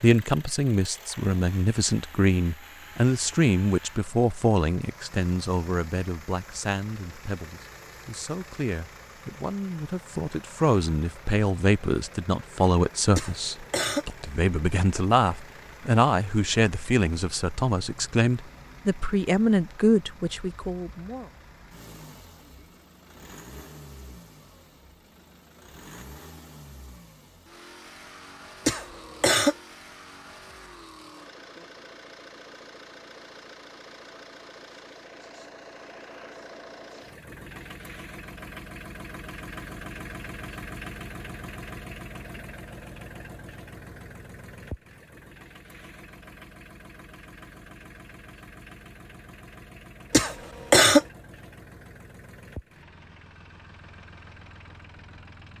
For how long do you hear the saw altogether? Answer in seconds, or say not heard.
not heard.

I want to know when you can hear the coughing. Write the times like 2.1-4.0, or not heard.
13.2-14.1, 28.6-29.6, 50.1-51.0.